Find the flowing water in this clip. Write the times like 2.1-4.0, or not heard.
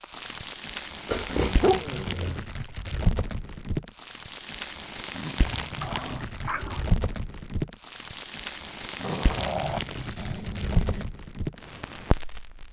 not heard.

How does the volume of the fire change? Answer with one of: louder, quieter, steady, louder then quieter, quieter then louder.
steady.